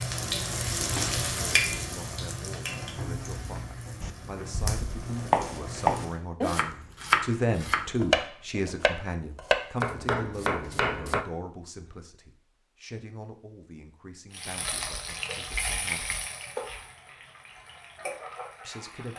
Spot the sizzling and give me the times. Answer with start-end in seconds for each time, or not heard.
0.0-6.2, 14.3-19.1.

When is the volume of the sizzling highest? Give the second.
1 s.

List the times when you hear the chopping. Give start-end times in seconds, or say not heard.
4.0-11.2.